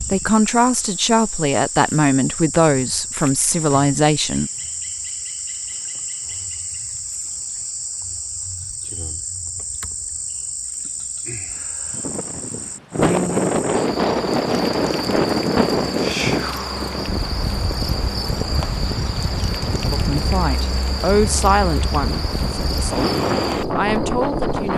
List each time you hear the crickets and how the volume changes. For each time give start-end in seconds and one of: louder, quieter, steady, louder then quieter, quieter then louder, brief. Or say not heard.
0.0-24.7 steady.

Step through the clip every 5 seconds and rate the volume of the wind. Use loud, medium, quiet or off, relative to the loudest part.
off, off, loud, loud, loud.